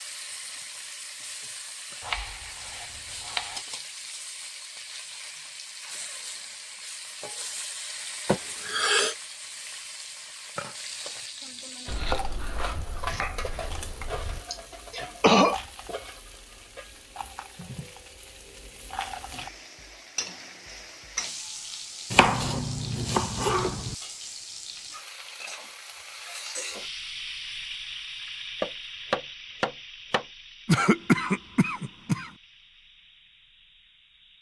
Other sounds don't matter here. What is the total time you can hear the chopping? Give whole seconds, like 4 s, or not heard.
8 s.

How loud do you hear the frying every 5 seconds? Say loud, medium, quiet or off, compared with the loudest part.
loud, loud, loud, loud, loud, loud, quiet.